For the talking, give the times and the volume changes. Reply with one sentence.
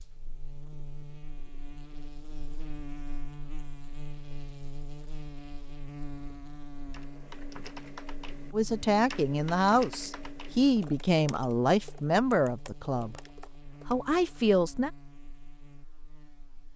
The talking can be heard from 8.5 to 13.2 s, at a steady volume; and briefly from 13.8 to 14.9 s.